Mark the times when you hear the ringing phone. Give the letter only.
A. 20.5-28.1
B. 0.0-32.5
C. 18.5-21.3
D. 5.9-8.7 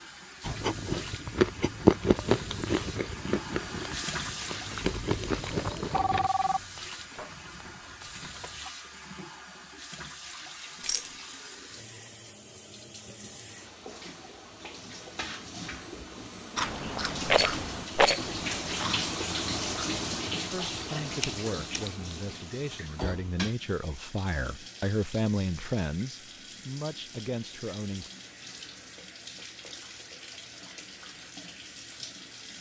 D.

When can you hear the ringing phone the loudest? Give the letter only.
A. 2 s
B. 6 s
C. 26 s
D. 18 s
B.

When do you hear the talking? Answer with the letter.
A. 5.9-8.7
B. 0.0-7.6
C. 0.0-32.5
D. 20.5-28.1
D.